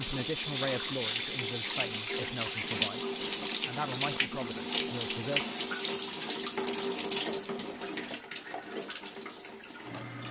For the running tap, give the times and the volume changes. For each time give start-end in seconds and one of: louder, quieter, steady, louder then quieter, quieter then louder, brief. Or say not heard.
0.0-10.2 quieter.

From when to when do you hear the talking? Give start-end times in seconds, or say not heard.
0.0-5.5.